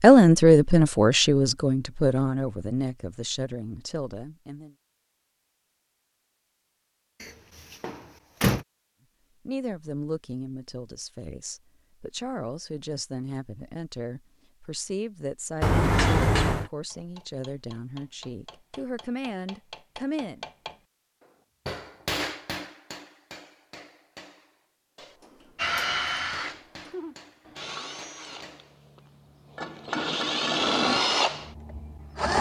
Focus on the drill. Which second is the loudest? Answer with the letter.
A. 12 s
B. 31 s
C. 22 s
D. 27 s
B.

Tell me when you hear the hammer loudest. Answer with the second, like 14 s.
22 s.